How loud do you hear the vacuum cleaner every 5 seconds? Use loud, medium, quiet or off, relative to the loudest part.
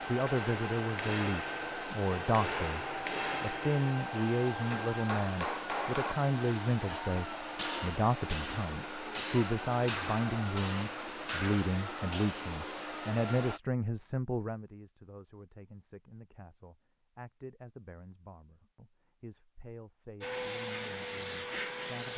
loud, loud, loud, off, loud.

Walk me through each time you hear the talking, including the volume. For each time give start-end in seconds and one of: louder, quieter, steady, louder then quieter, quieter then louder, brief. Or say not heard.
0.1-22.1 quieter.